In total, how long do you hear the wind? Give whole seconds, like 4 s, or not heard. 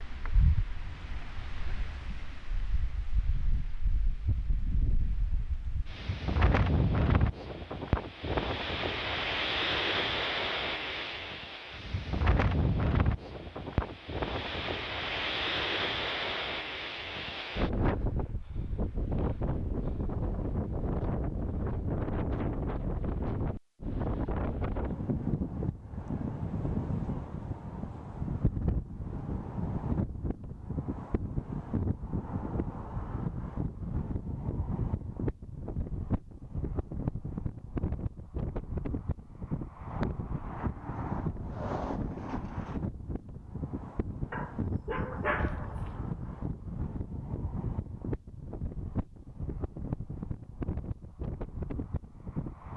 53 s.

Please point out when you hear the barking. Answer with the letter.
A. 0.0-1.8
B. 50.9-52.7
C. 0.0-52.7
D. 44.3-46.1
D.